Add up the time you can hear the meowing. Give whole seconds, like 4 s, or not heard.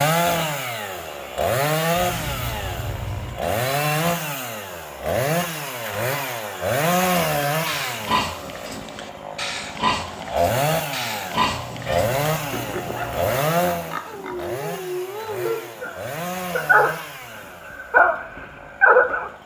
3 s.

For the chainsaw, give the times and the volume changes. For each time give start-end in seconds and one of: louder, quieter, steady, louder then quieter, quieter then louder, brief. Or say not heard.
0.0-19.4 quieter.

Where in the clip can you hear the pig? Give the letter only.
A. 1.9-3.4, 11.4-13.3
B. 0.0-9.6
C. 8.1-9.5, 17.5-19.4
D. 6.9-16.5
D.